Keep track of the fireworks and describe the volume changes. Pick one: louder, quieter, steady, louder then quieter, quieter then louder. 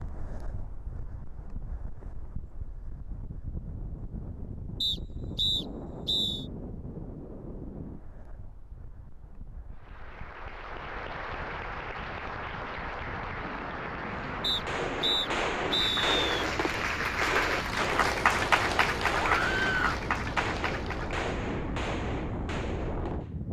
quieter.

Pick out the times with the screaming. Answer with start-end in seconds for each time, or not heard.
19.1-20.0.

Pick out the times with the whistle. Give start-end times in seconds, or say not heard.
4.8-6.5, 14.4-16.2.